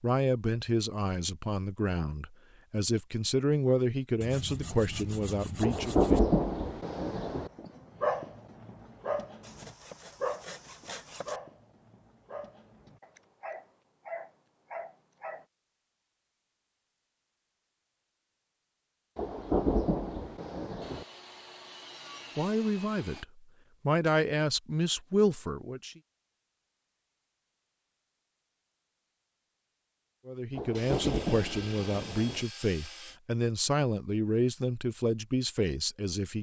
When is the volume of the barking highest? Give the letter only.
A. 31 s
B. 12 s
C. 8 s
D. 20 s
C.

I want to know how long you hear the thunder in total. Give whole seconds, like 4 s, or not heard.
6 s.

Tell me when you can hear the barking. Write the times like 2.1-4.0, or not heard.
7.5-15.4.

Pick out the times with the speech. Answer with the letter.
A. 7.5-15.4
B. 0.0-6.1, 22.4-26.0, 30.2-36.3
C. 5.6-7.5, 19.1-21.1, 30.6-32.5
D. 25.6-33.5
B.